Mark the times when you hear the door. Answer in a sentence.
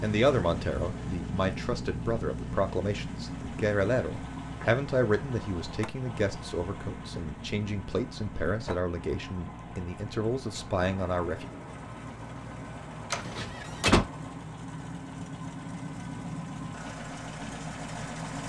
The door can be heard from 13.1 to 14.1 s.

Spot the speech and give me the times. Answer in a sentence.
You can hear the speech from 0.0 to 11.4 s.